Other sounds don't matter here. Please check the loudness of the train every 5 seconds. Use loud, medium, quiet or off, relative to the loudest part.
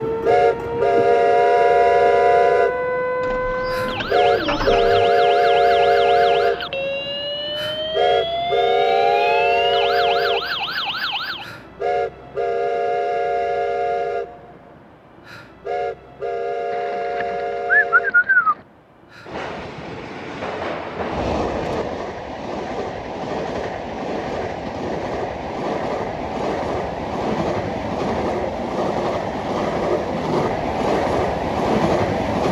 loud, loud, medium, medium, medium, medium, loud.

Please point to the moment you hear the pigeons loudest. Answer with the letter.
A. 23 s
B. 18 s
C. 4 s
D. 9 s
B.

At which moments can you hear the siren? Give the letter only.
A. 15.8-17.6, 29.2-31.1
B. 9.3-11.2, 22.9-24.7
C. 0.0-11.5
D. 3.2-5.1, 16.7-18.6
C.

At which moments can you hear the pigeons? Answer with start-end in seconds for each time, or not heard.
3.2-5.1, 16.7-18.6.